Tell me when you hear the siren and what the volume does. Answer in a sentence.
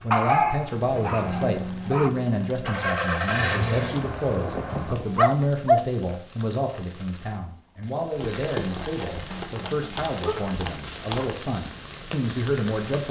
The siren can't be heard in this clip.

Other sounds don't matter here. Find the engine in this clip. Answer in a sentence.
You can hear the engine from 0.0 to 5.0 s.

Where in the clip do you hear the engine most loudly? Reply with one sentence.
The loudest moment of the engine is at 3 seconds.